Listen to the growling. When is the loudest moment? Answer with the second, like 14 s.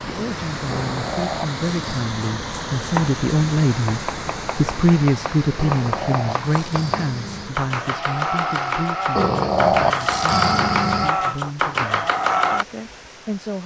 10 s.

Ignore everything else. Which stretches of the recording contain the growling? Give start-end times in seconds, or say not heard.
0.7-2.1, 5.5-7.5, 9.2-11.1.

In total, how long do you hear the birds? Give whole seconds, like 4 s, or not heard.
not heard.